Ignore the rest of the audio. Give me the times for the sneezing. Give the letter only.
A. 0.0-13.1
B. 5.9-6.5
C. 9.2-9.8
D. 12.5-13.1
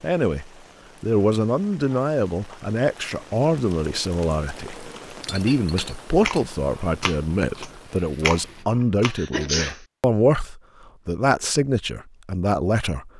C.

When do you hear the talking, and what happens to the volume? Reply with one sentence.
The talking can be heard from 0.0 to 13.1 s, at a steady volume.